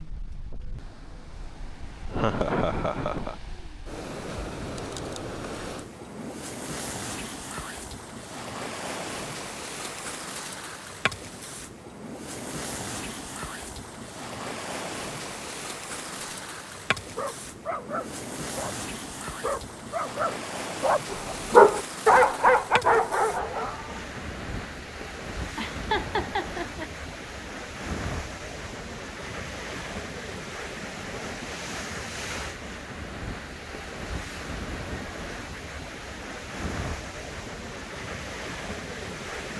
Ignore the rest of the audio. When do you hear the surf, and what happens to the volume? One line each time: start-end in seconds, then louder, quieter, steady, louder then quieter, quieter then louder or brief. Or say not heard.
0.0-39.5 steady.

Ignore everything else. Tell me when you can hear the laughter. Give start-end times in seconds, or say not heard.
2.1-3.4, 25.6-26.9.